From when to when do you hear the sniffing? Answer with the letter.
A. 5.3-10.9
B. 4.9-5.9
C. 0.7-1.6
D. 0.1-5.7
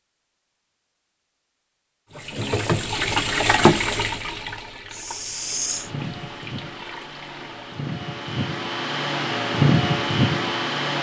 B.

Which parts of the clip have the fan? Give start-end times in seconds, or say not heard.
5.3-10.9.